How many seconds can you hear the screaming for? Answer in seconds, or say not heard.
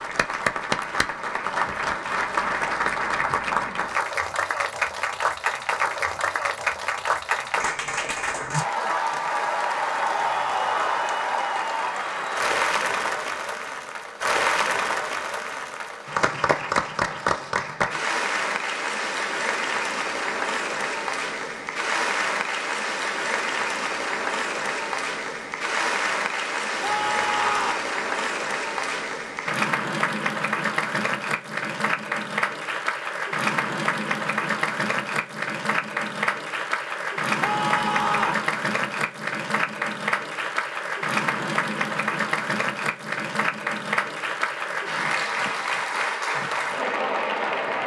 3 s.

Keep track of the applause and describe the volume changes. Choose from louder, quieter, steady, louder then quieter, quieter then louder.
steady.